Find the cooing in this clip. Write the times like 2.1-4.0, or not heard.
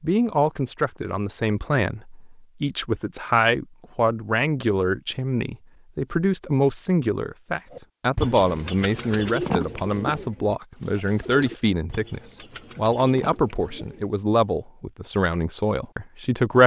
7.7-14.2.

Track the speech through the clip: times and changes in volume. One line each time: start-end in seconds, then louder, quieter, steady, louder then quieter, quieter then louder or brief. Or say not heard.
0.0-16.6 steady.